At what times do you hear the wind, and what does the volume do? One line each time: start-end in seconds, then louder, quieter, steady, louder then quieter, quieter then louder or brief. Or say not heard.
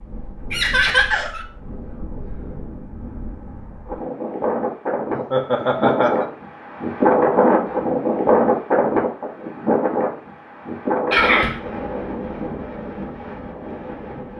0.0-14.3 louder then quieter.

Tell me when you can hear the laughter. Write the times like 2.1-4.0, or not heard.
0.5-1.4, 5.2-6.2, 11.1-11.6.